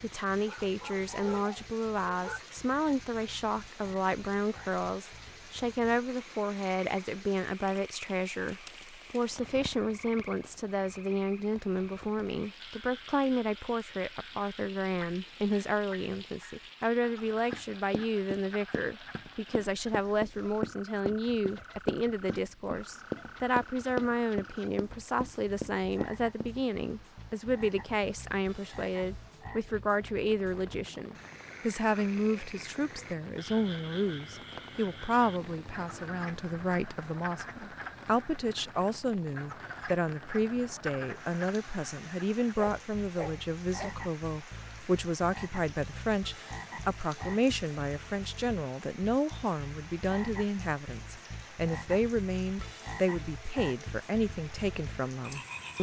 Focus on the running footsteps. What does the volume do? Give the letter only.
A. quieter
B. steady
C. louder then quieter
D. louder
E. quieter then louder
C.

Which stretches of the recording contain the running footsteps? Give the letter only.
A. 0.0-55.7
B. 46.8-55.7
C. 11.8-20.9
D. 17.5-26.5
D.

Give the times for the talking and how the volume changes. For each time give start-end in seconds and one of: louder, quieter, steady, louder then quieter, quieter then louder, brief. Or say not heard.
0.0-55.7 steady.